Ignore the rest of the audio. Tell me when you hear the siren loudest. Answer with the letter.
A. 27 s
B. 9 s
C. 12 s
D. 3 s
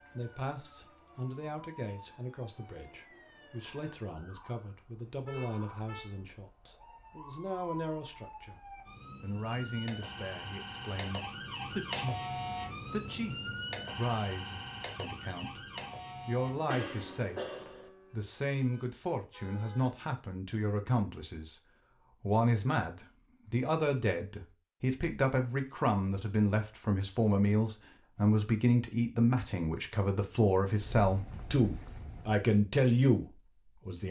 C.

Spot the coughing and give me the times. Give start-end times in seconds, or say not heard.
16.6-17.9.